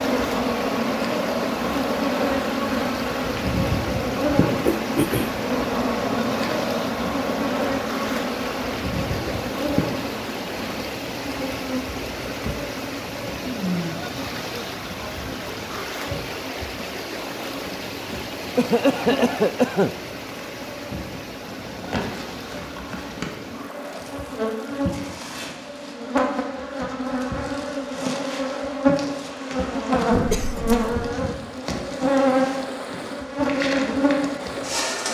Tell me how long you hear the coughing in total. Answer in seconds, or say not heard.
3 s.